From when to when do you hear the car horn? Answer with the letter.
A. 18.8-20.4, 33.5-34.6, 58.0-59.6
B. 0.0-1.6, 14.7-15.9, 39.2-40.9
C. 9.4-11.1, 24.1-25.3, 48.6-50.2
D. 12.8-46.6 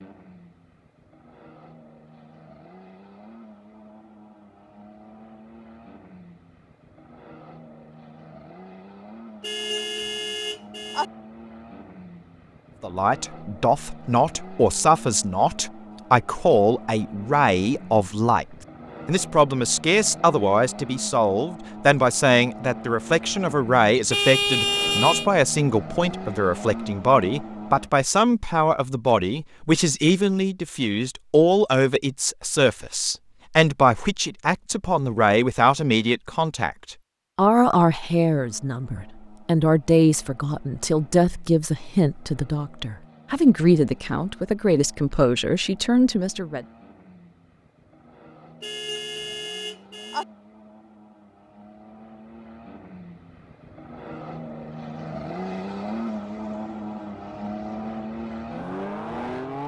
C.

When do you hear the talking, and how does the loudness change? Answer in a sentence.
You can hear the talking from 12.8 to 46.6 s, at a steady volume.